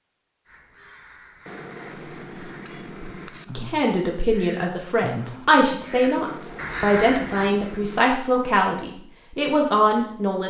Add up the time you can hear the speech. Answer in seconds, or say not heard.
7 s.